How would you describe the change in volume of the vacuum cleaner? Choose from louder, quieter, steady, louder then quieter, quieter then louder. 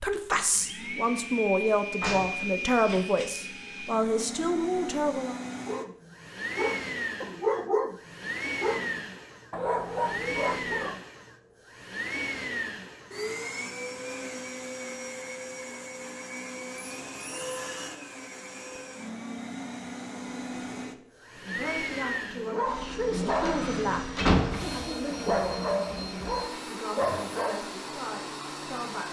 steady.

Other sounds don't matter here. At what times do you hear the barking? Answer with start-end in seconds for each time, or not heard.
5.7-11.0, 22.4-27.6.